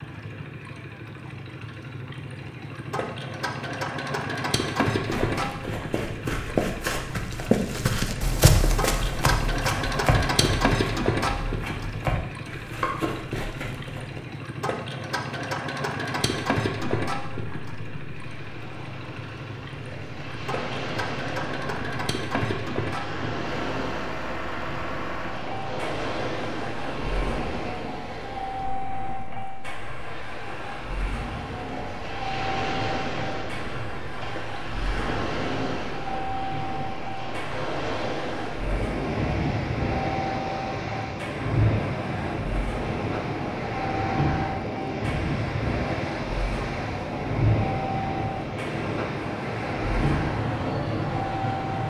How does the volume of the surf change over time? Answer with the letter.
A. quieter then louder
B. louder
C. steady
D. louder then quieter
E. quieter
B.